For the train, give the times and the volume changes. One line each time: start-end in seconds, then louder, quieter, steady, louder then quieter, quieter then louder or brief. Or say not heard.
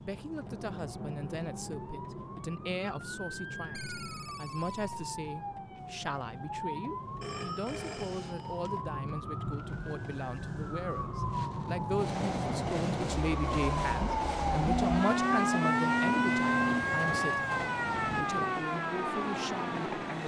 11.9-20.2 steady.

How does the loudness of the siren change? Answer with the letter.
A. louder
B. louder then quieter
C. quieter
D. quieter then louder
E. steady
A.